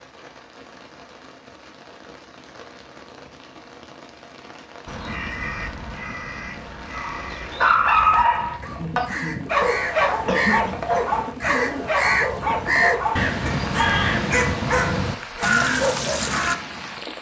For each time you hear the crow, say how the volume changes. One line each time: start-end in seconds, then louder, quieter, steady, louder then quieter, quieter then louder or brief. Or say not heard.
4.8-16.6 louder.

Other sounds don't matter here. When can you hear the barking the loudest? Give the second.
8 s.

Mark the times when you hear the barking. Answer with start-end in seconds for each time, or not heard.
7.0-16.2.